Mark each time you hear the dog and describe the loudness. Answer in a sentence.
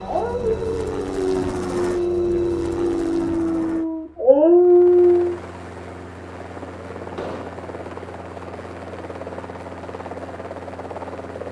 The dog can be heard from 0.0 to 5.3 s, getting louder.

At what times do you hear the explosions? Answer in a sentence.
The explosions can be heard from 7.2 to 7.6 s.